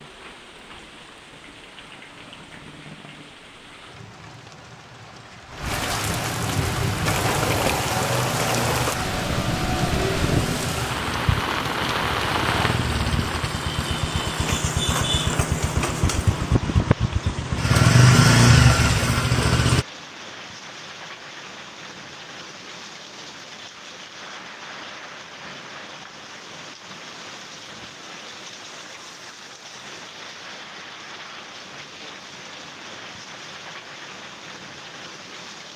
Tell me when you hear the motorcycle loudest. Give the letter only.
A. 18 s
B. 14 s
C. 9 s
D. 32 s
A.